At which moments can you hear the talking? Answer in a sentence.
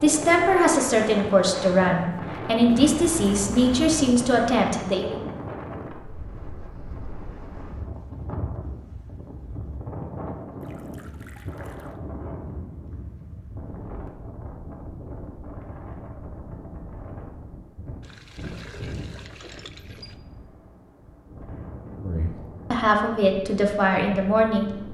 You can hear the talking from 0.0 to 5.2 s and from 22.0 to 24.8 s.